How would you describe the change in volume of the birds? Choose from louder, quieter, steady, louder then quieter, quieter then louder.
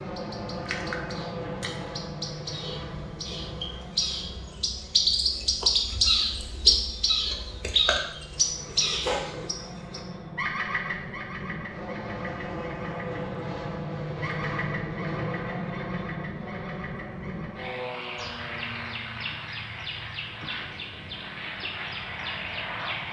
louder then quieter.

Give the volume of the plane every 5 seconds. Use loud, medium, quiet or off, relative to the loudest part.
loud, medium, loud, loud, loud.